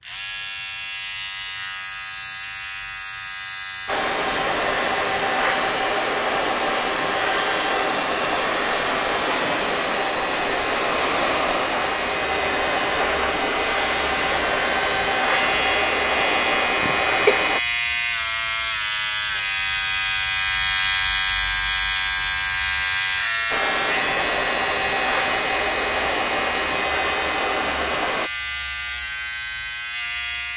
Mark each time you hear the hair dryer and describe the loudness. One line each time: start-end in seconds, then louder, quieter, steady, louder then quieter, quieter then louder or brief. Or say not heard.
3.9-17.6 steady
23.5-28.3 steady.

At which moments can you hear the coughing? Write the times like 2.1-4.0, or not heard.
16.8-17.4.